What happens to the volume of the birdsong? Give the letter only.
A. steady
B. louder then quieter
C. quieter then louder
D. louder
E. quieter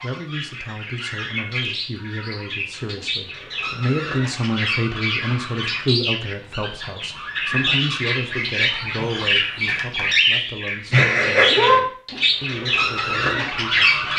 D.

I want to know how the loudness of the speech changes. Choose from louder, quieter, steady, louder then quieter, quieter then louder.
louder then quieter.